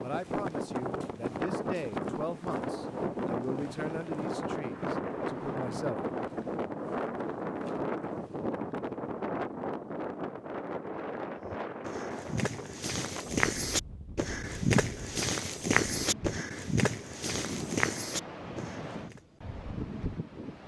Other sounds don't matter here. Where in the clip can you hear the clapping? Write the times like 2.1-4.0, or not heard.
not heard.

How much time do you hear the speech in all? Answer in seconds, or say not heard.
6 s.